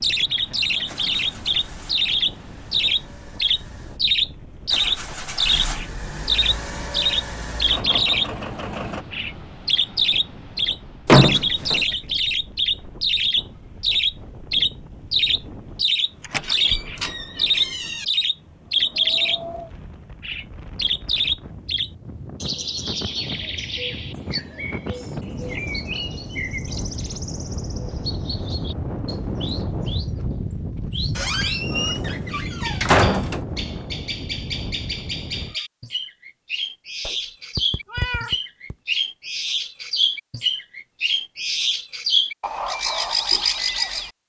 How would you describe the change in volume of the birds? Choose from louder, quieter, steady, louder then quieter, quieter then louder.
quieter then louder.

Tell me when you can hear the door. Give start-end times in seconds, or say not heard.
11.1-11.8, 16.2-18.1, 31.1-33.4.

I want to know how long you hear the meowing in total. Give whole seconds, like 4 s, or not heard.
2 s.